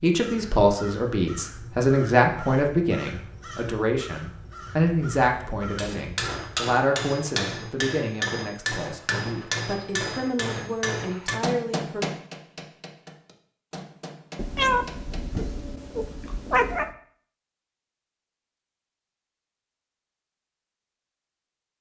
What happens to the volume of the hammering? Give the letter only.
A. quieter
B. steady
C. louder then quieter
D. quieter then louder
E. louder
A.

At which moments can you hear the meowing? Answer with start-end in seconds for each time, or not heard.
14.3-16.9.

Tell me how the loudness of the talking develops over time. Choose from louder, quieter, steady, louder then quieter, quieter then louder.
quieter.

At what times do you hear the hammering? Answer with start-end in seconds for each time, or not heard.
5.8-15.6.